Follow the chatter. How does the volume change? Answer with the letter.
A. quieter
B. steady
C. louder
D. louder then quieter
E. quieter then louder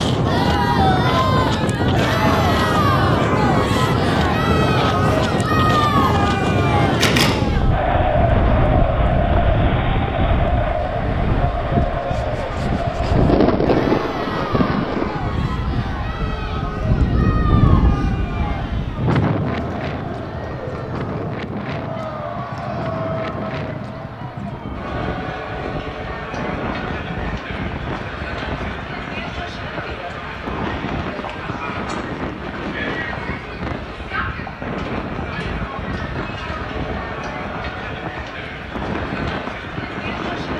A.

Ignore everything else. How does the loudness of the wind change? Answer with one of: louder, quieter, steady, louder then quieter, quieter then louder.
quieter.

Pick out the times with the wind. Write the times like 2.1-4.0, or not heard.
0.0-40.5.